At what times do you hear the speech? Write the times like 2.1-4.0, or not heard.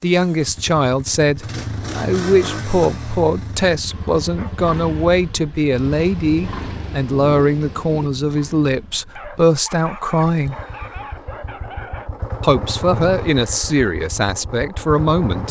0.0-10.6, 12.4-15.4.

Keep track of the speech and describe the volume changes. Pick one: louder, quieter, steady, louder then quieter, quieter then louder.
steady.